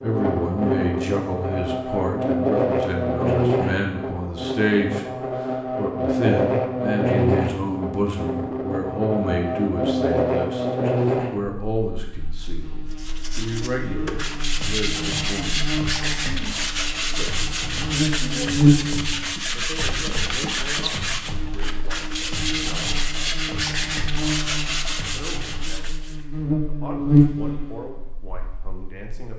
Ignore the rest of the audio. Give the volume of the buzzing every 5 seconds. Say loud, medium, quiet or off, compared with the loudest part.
loud, loud, loud, loud, medium, loud.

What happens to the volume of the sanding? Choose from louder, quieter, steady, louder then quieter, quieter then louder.
steady.